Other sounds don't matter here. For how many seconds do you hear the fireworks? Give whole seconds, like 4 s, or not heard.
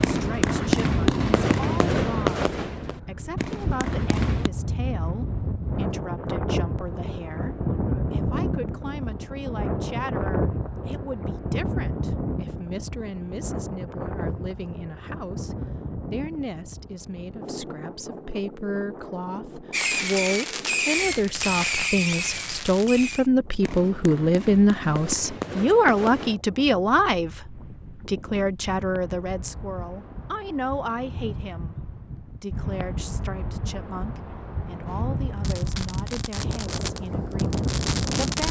15 s.